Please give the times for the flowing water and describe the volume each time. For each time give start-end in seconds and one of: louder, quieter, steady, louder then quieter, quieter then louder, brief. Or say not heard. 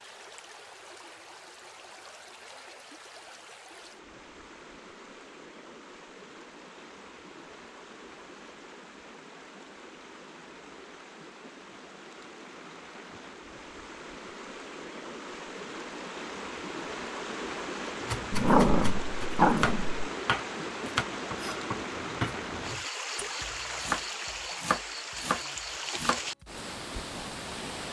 0.0-27.8 louder.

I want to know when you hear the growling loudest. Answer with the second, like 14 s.
19 s.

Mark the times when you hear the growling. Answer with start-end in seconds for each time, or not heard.
18.3-19.9.